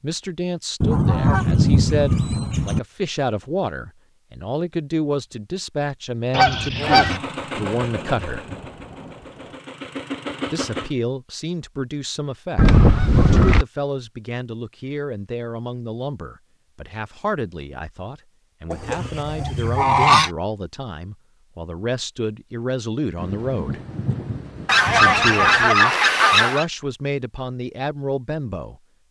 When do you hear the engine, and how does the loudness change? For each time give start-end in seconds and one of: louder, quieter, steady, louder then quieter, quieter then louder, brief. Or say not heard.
6.9-10.9 quieter then louder.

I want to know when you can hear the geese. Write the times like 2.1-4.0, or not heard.
0.8-2.8, 6.3-7.2, 12.6-13.7, 18.7-20.3, 24.6-26.6.